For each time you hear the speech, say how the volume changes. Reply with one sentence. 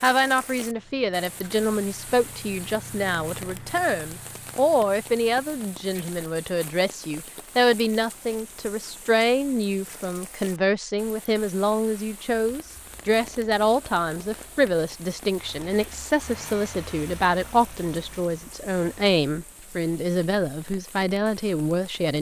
You can hear the speech from 0.0 to 22.1 s, at a steady volume.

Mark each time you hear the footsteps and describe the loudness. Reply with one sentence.
The footsteps can't be heard in this clip.